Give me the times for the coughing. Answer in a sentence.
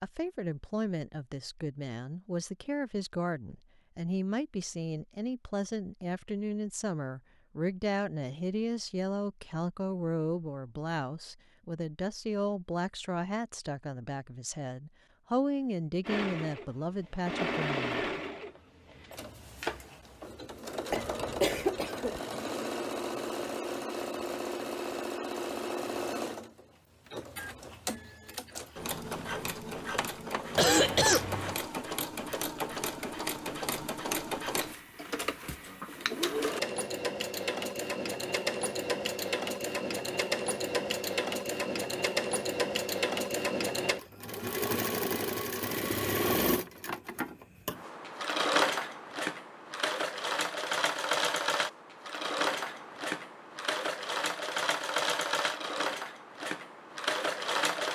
The coughing can be heard from 20.9 to 22.2 s and from 30.6 to 31.6 s.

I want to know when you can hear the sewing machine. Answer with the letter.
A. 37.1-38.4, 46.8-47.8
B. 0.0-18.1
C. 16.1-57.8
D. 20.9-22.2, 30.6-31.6
C.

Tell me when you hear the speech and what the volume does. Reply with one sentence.
The speech can be heard from 0.0 to 18.1 s, at a steady volume.